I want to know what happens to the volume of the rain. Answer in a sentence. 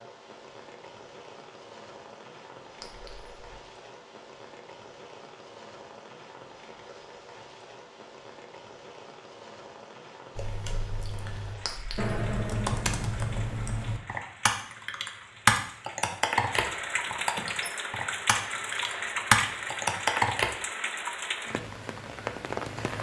The volume of the rain goes up.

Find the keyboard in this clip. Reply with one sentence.
The keyboard can be heard from 10.3 to 20.5 s.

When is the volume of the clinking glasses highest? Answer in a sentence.
The loudest moment of the clinking glasses is at 12 seconds.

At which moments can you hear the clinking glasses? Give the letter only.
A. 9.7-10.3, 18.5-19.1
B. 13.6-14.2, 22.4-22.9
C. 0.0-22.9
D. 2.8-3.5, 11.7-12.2
D.